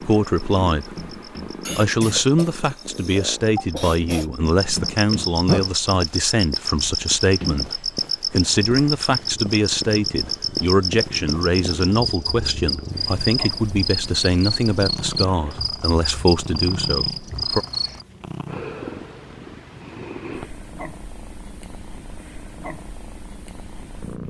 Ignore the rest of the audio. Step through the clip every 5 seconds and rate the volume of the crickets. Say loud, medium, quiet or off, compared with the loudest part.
medium, loud, loud, loud, off.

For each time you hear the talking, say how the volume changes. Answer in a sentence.
The talking can be heard briefly from 0.0 to 1.0 s; and from 1.8 to 17.6 s, at a steady volume.